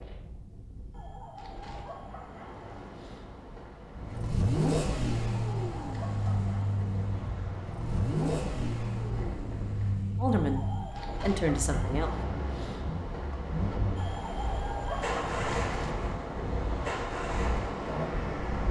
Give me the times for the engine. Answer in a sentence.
You can hear the engine from 4.0 to 18.6 s.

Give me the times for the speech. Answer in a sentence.
The speech can be heard from 10.2 to 12.1 s.